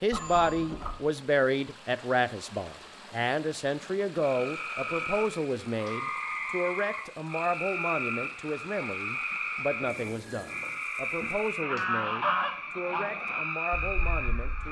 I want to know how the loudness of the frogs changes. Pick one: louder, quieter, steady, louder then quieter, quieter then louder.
steady.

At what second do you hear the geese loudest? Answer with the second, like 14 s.
12 s.